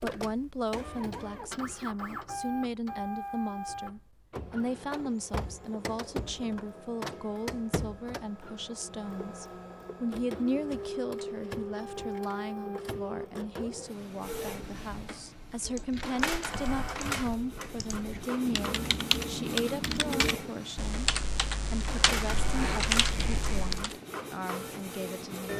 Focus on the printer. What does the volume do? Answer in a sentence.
The loudness of the printer stays about the same.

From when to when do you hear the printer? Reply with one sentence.
You can hear the printer from 0.0 to 25.5 s.